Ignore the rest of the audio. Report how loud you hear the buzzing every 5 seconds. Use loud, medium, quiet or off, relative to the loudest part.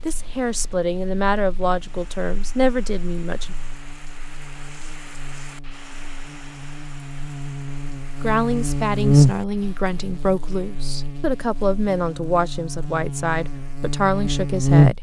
quiet, loud, loud.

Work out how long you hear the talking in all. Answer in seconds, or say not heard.
10 s.